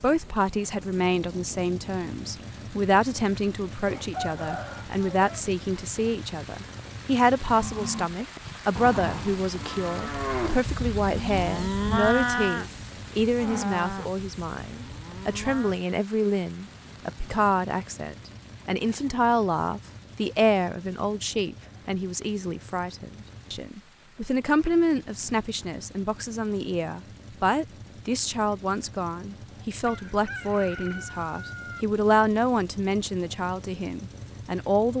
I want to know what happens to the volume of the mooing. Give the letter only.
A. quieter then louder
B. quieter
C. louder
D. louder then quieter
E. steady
D.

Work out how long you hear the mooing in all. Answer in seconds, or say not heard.
8 s.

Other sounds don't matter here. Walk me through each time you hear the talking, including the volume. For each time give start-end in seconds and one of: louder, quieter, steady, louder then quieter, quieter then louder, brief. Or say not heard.
0.0-34.9 steady.